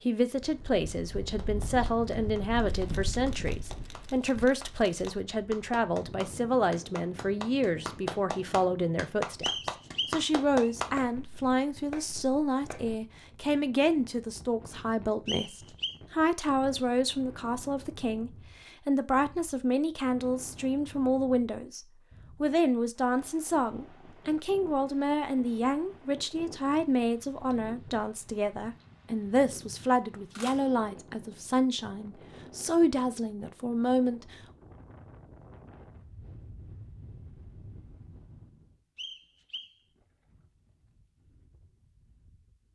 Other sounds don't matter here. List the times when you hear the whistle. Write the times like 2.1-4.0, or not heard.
9.4-10.7, 15.2-16.0, 39.0-39.8.